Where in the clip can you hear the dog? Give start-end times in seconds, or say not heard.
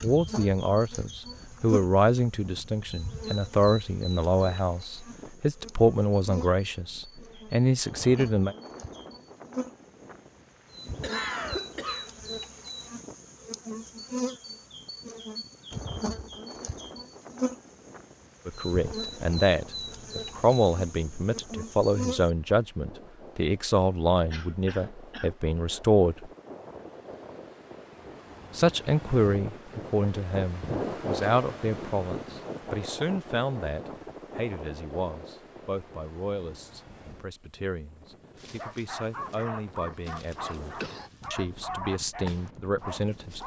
38.4-43.4.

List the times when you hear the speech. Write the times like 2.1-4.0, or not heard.
0.0-8.6, 18.4-26.3, 28.6-43.4.